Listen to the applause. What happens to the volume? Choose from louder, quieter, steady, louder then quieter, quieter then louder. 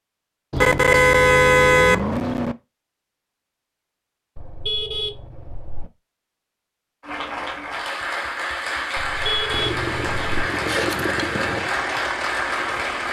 steady.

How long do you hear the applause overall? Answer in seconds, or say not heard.
6 s.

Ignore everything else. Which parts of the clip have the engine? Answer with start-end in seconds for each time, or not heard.
9.5-13.0.